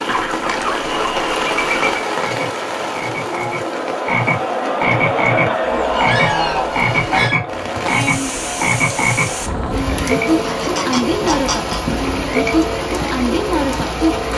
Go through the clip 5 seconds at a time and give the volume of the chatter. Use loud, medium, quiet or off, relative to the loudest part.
loud, loud, medium.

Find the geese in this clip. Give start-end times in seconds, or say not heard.
0.1-2.0, 5.6-7.4, 10.2-12.0.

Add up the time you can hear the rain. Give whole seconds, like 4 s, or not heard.
14 s.